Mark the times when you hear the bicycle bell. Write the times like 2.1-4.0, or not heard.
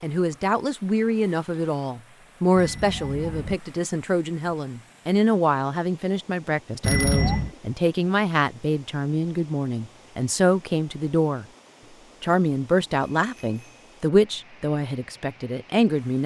2.5-3.5, 6.8-7.5, 13.2-13.8.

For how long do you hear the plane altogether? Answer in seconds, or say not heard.
not heard.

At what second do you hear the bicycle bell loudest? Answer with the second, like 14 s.
7 s.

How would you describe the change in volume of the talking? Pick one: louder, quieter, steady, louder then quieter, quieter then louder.
steady.